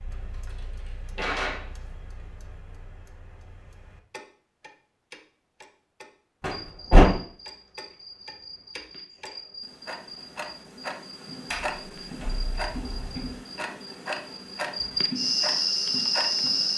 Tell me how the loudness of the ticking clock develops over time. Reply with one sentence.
The volume of the ticking clock goes up.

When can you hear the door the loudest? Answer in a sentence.
The loudest moment of the door is at 7 seconds.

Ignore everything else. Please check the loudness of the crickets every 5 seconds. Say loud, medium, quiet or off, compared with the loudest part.
off, quiet, quiet, loud.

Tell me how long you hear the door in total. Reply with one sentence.
You can hear the door for 4 seconds altogether.